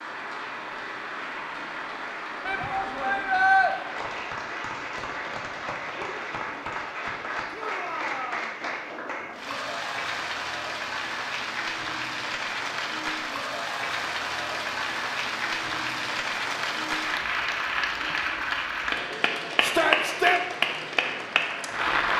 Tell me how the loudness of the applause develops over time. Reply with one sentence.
The volume of the applause goes up.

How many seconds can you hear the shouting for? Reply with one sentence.
You can hear the shouting for 3 seconds altogether.